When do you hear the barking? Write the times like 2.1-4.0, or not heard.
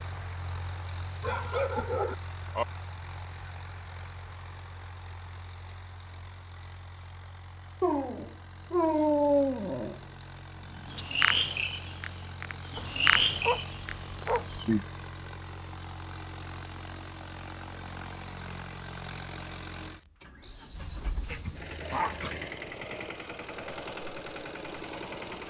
1.2-2.6, 7.8-10.0, 12.8-14.6, 20.8-22.4.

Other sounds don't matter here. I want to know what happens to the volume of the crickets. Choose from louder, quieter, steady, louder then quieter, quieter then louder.
quieter.